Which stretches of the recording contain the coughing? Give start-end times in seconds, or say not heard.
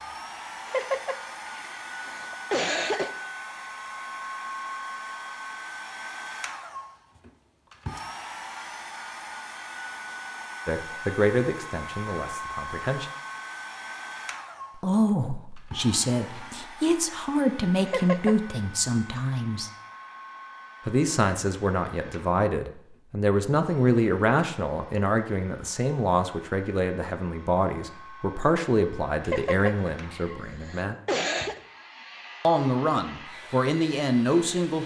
0.7-3.1, 17.9-18.4, 29.2-31.6.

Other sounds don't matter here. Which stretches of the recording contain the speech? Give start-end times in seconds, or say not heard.
10.7-13.1, 14.8-19.7, 20.9-30.9, 32.4-34.8.